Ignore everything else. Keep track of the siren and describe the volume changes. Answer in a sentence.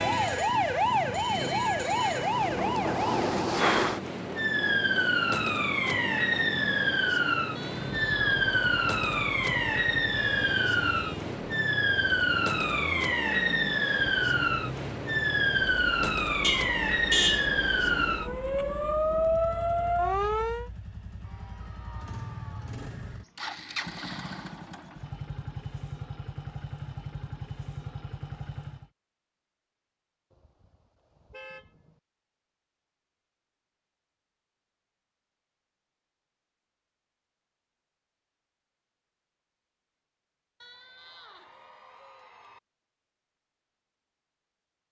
The loudness of the siren stays about the same.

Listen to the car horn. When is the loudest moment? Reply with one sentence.
The loudest moment of the car horn is at 17 seconds.